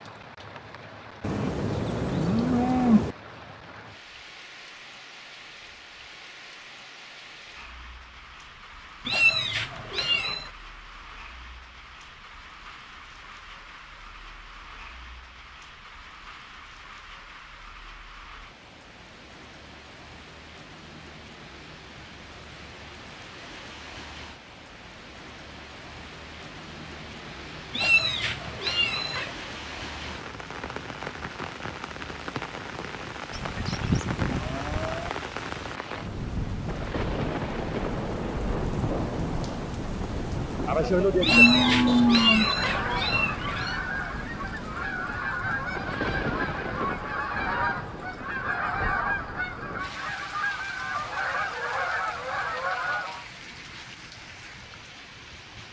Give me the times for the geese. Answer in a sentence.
The geese can be heard from 42.4 to 53.2 s.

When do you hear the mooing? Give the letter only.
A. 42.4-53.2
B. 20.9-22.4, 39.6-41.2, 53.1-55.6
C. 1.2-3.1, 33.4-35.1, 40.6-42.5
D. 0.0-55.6
C.